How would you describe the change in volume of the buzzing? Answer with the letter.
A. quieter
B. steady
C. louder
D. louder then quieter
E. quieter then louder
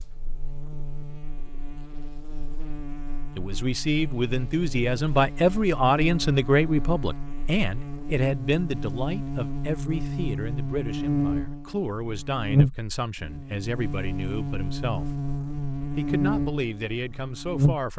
C.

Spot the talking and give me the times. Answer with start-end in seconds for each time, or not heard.
3.4-17.9.